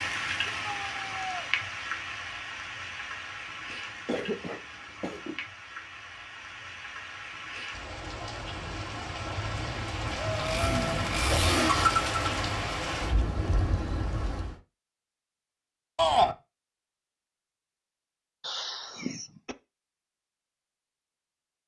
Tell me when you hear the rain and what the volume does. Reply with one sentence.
You can hear the rain from 0.0 to 14.6 s, getting quieter then louder.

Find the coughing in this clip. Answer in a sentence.
You can hear the coughing from 4.0 to 5.3 s, from 11.2 to 11.7 s and from 18.4 to 19.6 s.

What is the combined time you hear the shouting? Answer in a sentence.
You can hear the shouting for 2 seconds altogether.